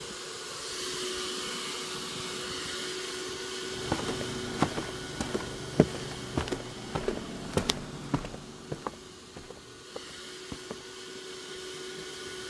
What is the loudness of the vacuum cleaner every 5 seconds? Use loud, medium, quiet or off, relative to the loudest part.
loud, medium, medium.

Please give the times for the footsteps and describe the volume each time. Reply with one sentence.
The footsteps can be heard from 3.7 to 11.1 s, getting quieter.